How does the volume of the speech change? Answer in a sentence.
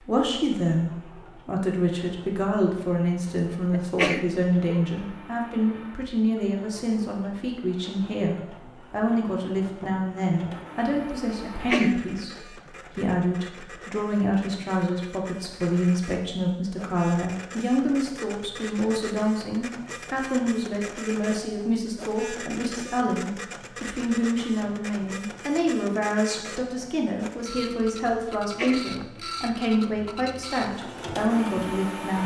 The loudness of the speech stays about the same.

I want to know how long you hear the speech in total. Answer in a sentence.
The speech can be heard for 32 seconds in total.